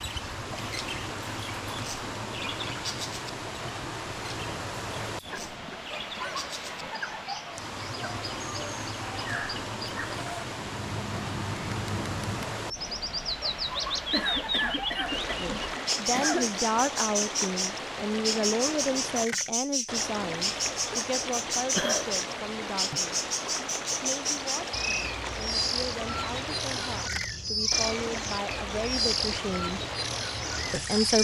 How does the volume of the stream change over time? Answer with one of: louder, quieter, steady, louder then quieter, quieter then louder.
steady.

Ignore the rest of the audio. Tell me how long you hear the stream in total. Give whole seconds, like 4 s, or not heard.
31 s.